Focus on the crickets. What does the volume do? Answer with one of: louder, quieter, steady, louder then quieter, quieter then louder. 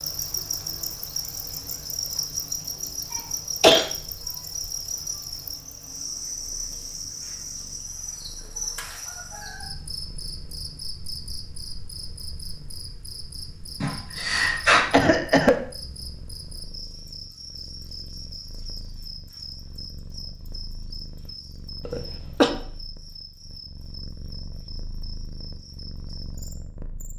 quieter.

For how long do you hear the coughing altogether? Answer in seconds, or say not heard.
2 s.